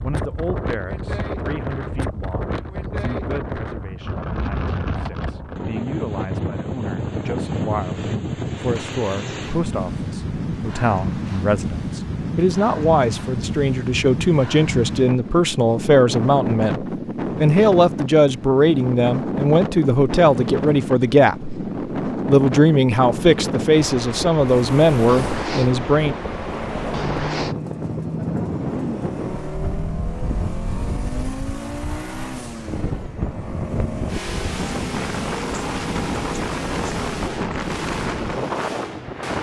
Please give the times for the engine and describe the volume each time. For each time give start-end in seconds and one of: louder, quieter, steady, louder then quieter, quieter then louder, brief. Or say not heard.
24.4-39.3 steady.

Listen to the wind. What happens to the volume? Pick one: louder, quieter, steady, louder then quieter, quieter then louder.
steady.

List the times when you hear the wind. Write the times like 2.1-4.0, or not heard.
0.0-39.3.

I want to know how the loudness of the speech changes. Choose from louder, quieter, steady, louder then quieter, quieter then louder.
louder.